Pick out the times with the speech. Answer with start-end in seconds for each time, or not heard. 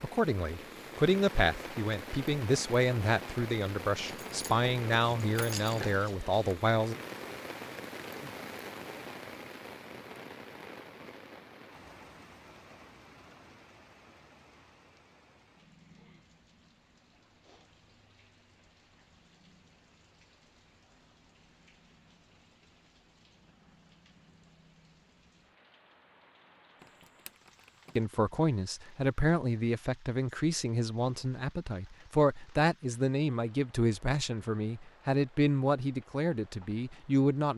0.0-7.0, 27.9-37.5.